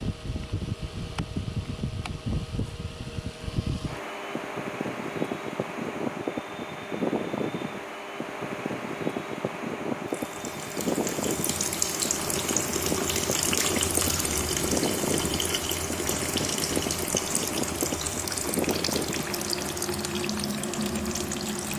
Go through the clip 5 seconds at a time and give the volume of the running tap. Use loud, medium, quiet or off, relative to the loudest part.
off, off, loud, loud, medium.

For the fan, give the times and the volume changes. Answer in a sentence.
You can hear the fan from 0.0 to 21.7 s, at a steady volume.